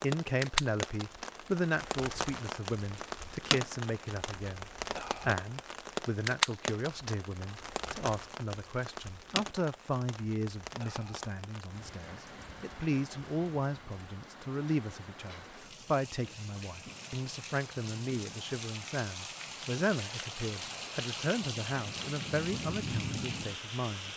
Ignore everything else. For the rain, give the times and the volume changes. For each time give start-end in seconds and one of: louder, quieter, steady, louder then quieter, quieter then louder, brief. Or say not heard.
0.0-24.1 quieter then louder.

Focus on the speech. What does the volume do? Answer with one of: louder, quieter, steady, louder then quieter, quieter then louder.
steady.